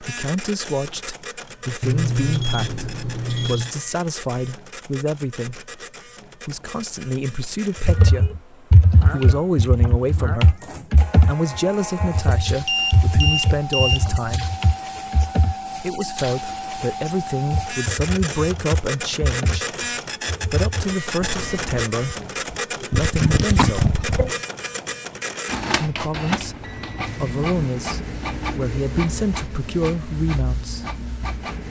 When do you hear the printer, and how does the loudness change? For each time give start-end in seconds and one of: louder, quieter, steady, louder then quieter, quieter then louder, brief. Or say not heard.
0.0-31.6 louder.